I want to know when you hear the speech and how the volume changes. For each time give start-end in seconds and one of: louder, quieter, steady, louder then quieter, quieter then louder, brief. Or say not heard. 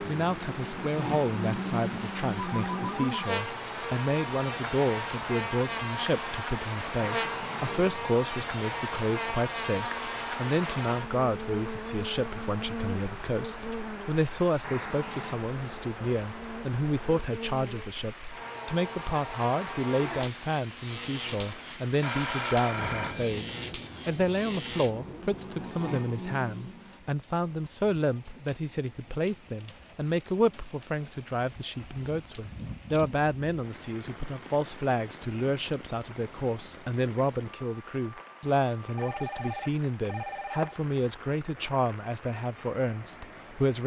0.0-43.8 steady.